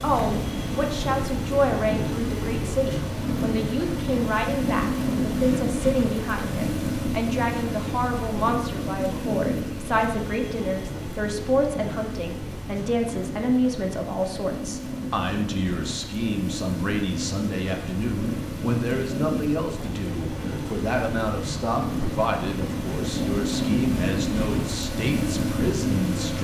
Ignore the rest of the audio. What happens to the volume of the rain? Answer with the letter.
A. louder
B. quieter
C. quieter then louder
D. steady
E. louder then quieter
C.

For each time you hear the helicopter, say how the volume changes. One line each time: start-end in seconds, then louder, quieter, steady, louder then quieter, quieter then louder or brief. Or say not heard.
not heard.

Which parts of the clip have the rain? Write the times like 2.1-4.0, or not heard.
0.0-26.3.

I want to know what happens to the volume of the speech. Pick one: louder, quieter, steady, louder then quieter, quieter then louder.
steady.